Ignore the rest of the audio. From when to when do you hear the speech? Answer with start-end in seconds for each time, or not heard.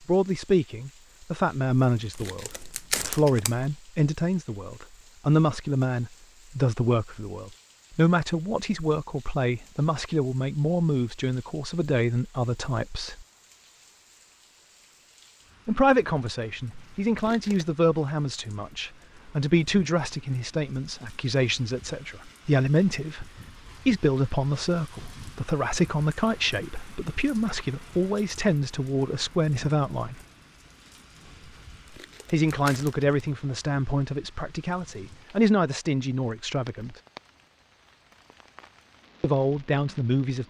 0.1-13.2, 15.7-30.1, 32.3-37.0, 39.2-40.4.